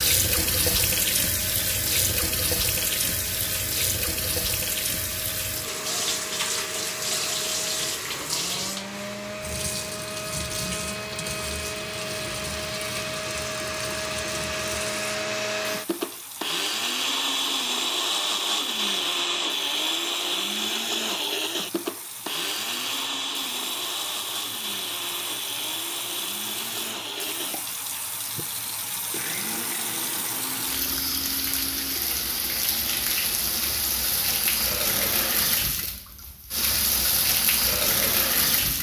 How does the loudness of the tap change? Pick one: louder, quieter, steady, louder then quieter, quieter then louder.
quieter then louder.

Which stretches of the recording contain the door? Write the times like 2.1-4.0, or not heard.
not heard.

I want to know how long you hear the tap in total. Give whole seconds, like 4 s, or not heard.
39 s.